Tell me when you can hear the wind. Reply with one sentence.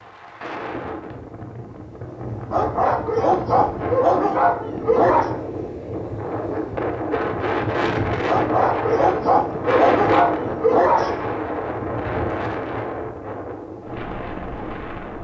The wind can be heard from 0.0 to 15.1 s.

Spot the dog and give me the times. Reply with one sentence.
The dog can be heard from 2.5 to 5.3 s and from 8.2 to 11.2 s.